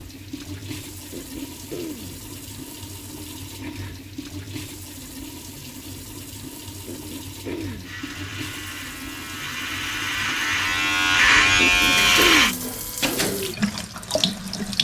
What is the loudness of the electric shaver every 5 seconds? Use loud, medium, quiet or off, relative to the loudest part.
off, quiet, loud.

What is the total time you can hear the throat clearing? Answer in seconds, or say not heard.
3 s.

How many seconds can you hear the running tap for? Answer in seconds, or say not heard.
15 s.